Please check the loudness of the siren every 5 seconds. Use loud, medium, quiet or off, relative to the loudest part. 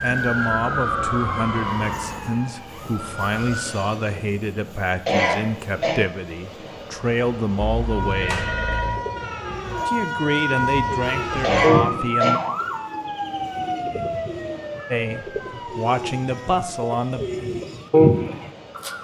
loud, loud, loud, medium.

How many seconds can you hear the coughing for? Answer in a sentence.
The coughing can be heard for 2 seconds in total.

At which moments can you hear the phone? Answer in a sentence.
You can hear the phone from 7.6 to 9.0 s.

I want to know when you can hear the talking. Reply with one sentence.
You can hear the talking from 0.0 to 8.5 s, from 9.8 to 12.4 s and from 14.9 to 17.2 s.